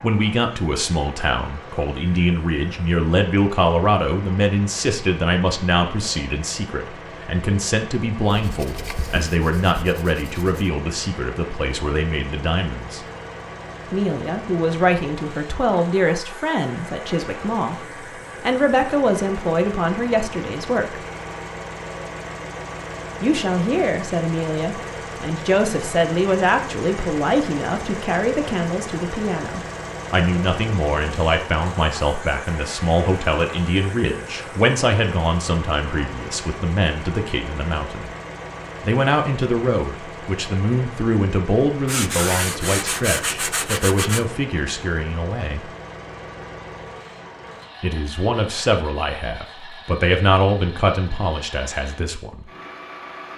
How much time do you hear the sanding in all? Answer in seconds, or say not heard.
5 s.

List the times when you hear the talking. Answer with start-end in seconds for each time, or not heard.
0.0-13.1, 13.9-17.8, 18.4-21.0, 23.2-38.1, 38.8-45.7, 47.8-52.5.